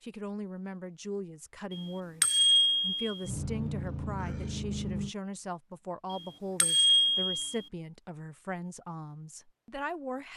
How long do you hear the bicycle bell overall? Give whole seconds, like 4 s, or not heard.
3 s.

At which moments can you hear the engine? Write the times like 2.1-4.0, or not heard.
3.2-5.2.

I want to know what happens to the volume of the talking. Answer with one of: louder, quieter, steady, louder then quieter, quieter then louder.
steady.